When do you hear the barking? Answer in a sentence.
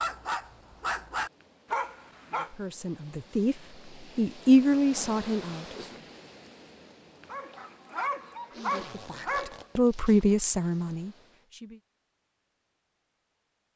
You can hear the barking from 0.0 to 2.5 s and from 7.2 to 9.7 s.